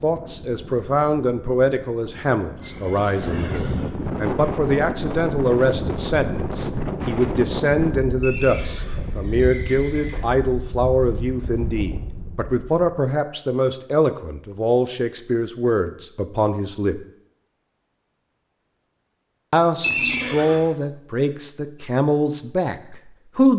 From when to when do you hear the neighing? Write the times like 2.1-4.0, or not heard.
2.5-3.9, 8.2-10.2, 19.8-20.6.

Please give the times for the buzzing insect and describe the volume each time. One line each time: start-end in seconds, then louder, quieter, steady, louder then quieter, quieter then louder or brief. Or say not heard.
not heard.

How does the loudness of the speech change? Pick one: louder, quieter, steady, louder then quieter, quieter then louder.
steady.